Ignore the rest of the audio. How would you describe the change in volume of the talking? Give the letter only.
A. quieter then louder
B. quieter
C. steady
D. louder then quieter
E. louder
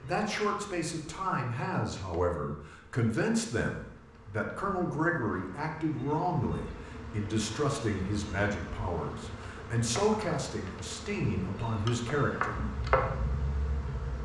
C.